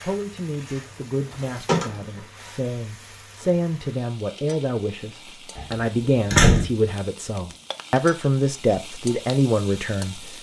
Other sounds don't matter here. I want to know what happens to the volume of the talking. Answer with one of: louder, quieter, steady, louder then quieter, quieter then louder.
louder.